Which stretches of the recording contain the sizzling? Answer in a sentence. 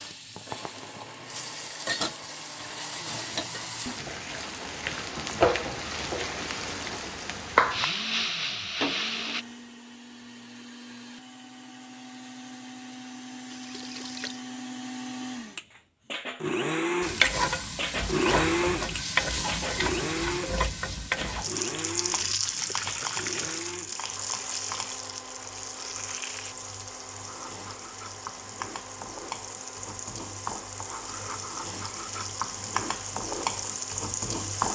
You can hear the sizzling from 0.0 to 9.4 s and from 17.0 to 34.7 s.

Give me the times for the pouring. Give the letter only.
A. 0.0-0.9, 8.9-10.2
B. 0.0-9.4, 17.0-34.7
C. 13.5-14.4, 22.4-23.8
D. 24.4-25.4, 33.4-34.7
C.